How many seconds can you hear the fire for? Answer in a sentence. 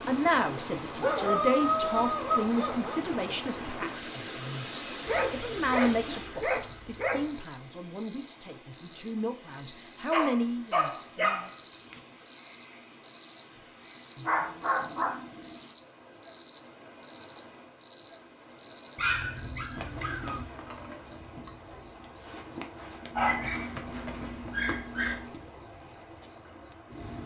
The fire can't be heard in this clip.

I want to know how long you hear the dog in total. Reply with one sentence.
You can hear the dog for 11 seconds altogether.